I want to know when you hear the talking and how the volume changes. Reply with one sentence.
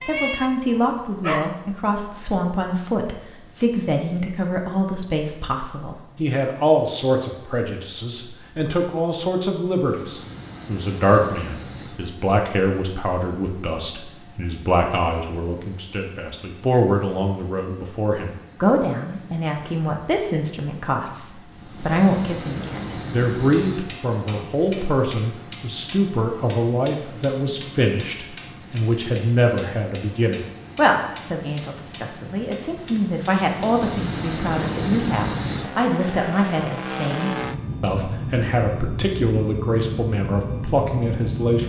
You can hear the talking from 0.1 to 41.6 s, at a steady volume.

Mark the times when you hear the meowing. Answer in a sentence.
You can hear the meowing from 0.0 to 1.6 s.